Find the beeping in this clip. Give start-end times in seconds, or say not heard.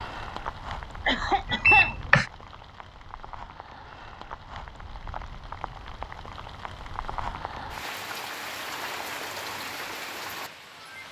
1.4-2.2.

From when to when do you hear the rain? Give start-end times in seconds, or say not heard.
0.0-11.0.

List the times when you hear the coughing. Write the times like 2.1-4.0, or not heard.
1.1-1.9.